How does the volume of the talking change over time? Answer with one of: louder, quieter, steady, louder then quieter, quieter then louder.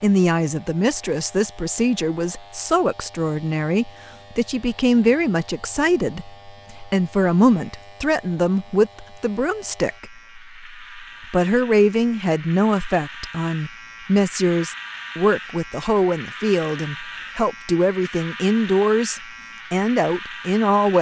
steady.